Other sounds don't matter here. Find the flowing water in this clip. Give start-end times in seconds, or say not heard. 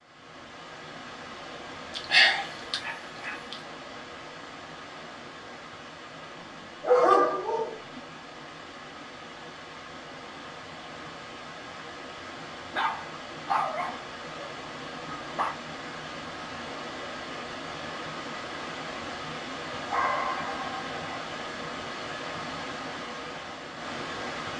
0.0-24.5.